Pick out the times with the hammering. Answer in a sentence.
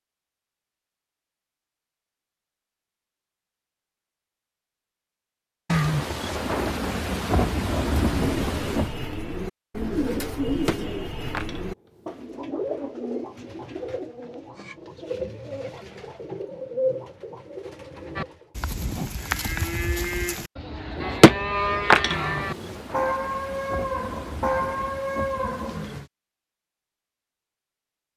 The hammering can be heard from 10.4 to 11.6 s and from 21.0 to 22.1 s.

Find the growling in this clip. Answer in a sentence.
You can't hear the growling here.